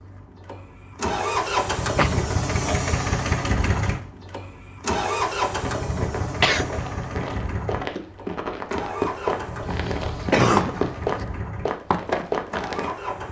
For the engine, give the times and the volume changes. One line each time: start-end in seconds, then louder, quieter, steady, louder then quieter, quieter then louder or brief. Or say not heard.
0.0-13.2 quieter.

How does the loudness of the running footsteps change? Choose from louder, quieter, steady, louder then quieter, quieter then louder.
louder.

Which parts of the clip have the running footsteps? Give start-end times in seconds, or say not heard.
5.5-12.9.